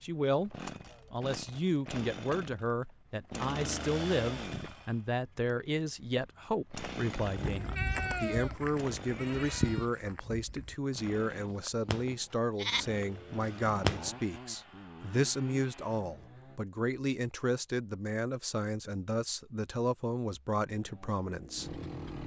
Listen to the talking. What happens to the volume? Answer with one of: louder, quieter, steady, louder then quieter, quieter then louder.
steady.